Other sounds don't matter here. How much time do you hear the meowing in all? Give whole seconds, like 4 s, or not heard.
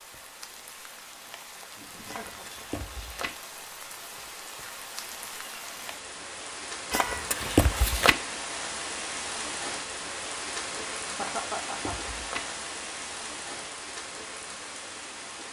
4 s.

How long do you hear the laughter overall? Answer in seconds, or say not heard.
2 s.